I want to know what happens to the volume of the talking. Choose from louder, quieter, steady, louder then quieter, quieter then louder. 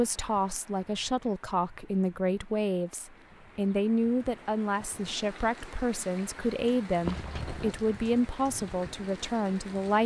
steady.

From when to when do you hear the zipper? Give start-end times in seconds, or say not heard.
7.0-7.8.